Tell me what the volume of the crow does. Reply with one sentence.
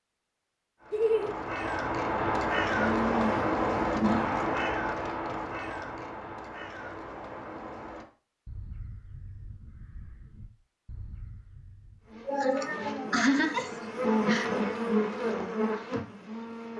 The volume of the crow goes down.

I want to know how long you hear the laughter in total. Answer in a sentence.
The laughter can be heard for 3 seconds in total.